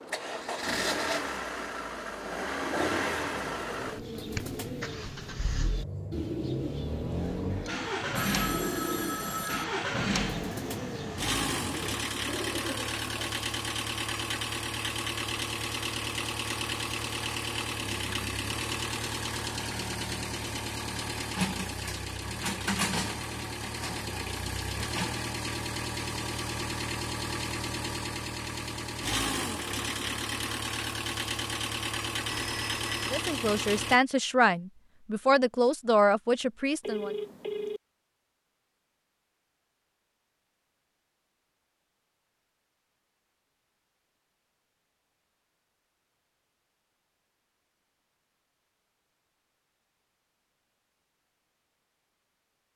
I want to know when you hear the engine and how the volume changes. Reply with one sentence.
You can hear the engine from 0.0 to 34.0 s, at a steady volume.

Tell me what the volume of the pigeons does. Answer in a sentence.
The loudness of the pigeons stays about the same.